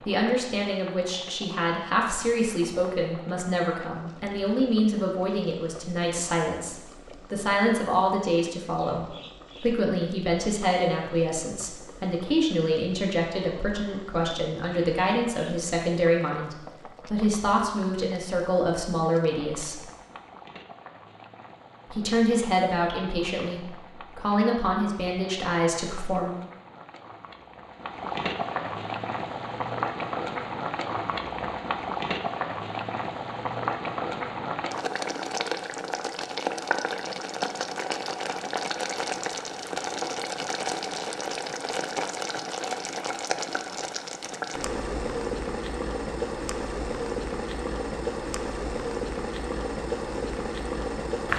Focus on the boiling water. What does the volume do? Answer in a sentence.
The volume of the boiling water goes up.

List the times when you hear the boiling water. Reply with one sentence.
The boiling water can be heard from 0.0 to 51.3 s.